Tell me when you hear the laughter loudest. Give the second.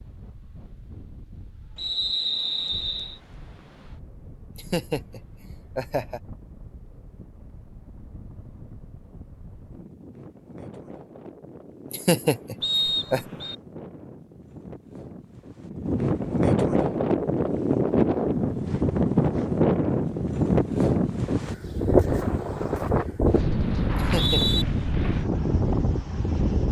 12 s.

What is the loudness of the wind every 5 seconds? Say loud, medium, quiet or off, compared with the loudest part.
quiet, quiet, quiet, loud, loud, loud.